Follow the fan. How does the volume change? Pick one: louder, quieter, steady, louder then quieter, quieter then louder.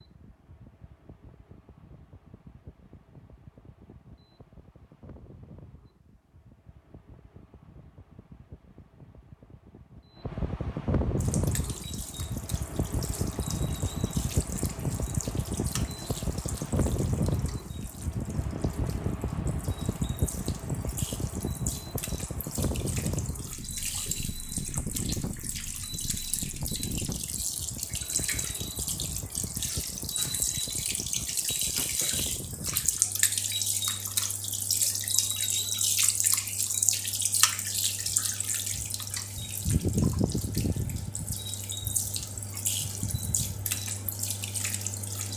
louder then quieter.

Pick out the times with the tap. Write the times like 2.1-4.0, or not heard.
11.2-45.3.